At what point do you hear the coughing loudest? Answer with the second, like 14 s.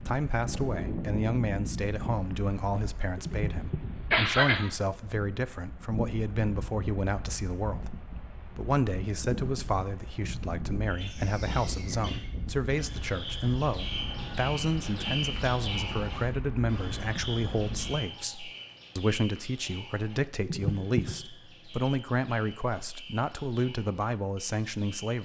4 s.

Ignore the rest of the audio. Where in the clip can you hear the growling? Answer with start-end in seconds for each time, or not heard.
not heard.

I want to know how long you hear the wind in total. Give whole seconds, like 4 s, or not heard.
18 s.